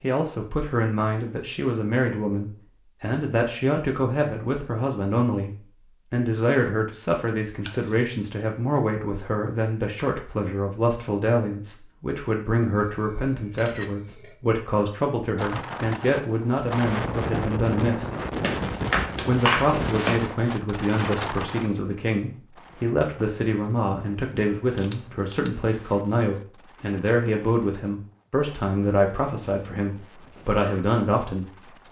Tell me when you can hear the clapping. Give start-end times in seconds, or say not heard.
18.4-20.2.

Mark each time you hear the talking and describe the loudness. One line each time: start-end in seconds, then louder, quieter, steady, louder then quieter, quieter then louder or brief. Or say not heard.
0.0-18.1 steady
19.2-31.8 steady.